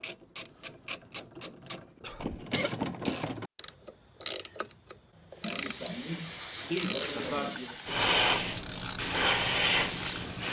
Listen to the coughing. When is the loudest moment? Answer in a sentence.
The volume of the coughing peaks at 7 seconds.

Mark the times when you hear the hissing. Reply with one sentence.
You can hear the hissing from 5.5 to 10.4 s.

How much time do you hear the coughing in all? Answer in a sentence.
You can hear the coughing for 3 seconds altogether.